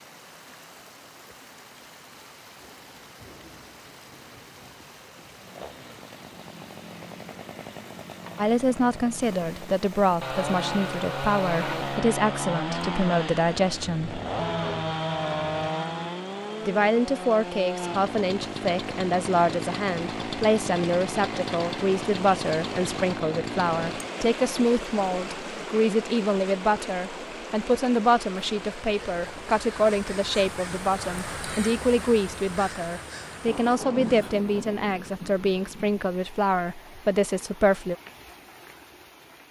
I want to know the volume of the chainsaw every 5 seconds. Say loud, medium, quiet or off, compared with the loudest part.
off, quiet, loud, loud, loud, off, off, off.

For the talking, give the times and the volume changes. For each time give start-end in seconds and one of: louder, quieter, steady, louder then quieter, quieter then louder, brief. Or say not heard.
8.3-14.2 steady
16.6-38.0 steady.